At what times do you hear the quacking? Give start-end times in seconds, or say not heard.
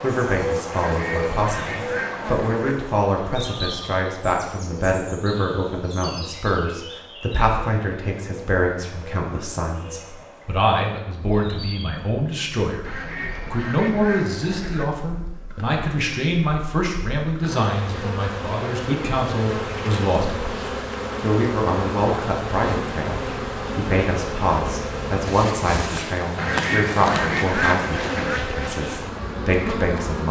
0.7-2.8, 12.8-14.8, 26.4-28.4.